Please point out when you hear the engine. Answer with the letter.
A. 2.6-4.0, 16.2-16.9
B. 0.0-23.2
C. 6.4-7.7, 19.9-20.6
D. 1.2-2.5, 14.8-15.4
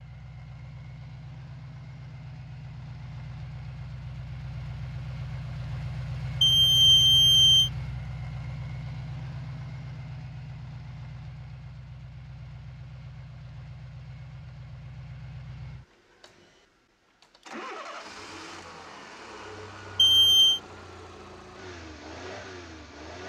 B.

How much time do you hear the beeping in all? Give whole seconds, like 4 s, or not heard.
2 s.